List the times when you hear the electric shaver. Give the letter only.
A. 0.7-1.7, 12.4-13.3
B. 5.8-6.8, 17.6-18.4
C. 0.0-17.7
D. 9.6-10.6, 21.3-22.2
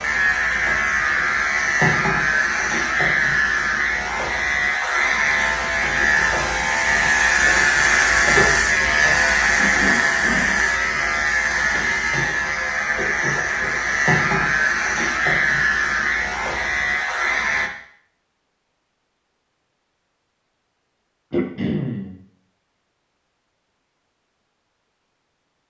C.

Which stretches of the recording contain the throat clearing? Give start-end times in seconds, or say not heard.
9.6-10.6, 21.3-22.2.